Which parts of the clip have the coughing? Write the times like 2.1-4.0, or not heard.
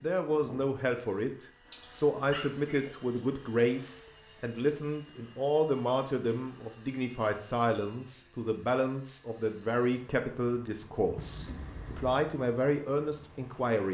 not heard.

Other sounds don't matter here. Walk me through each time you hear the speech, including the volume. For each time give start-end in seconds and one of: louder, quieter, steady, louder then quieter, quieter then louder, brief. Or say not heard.
0.0-13.9 steady.